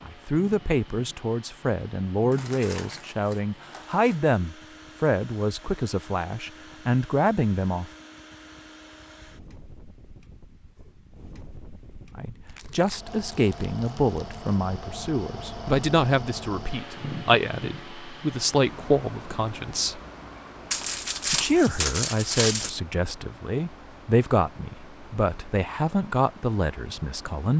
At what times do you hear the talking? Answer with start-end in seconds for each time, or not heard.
0.0-7.9, 12.2-20.0, 21.3-27.5.